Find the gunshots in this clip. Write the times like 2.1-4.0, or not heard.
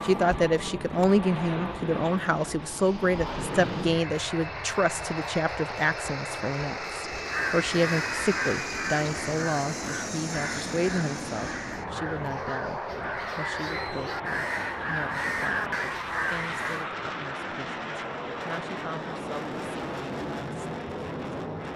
not heard.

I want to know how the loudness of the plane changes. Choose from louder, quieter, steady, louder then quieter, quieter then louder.
steady.